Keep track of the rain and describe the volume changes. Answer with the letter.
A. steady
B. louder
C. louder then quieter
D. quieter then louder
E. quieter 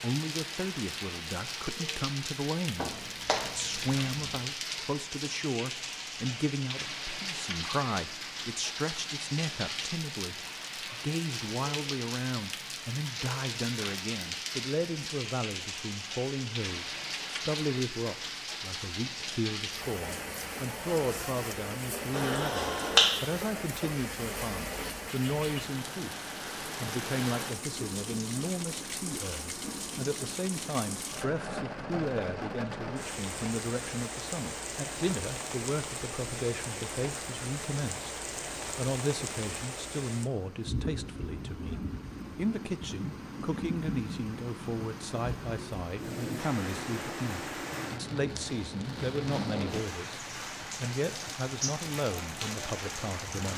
A.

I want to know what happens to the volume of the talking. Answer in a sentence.
The loudness of the talking stays about the same.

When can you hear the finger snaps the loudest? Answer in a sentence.
The loudest moment of the finger snaps is at 23 seconds.